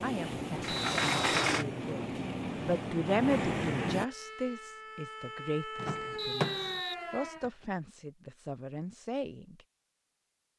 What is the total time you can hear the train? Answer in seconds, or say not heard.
4 s.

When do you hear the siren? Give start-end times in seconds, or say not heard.
4.0-7.5.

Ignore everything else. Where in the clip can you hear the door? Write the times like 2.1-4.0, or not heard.
0.6-1.6, 5.8-6.8.